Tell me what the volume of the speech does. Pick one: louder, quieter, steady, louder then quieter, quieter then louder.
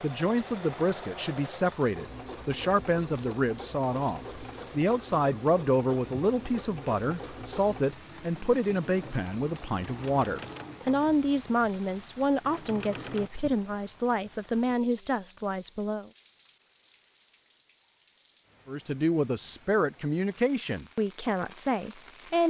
steady.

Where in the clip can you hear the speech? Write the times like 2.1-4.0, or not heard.
0.0-16.1, 18.6-22.4.